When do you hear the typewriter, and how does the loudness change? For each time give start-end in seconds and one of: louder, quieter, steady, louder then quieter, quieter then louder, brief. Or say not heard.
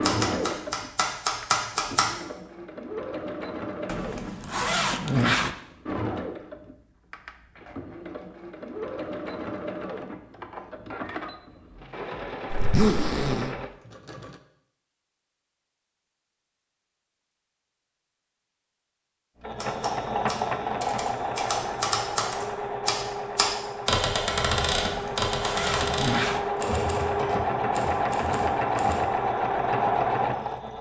0.0-2.1 brief
19.6-29.1 louder then quieter.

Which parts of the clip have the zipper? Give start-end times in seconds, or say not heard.
3.9-5.5, 12.5-13.6, 24.9-26.5.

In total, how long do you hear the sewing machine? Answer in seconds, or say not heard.
26 s.